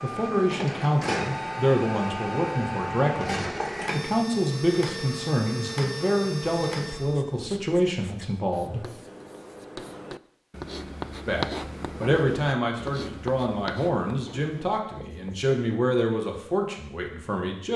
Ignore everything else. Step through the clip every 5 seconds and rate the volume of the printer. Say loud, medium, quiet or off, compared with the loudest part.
loud, loud, off, off.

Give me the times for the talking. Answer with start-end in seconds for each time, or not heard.
0.0-8.8, 11.2-17.7.